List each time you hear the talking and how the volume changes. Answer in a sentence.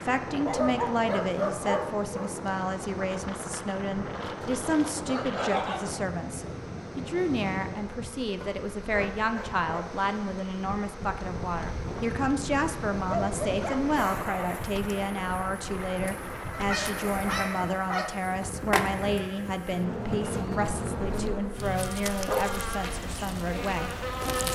The talking can be heard from 0.0 to 24.5 s, at a steady volume.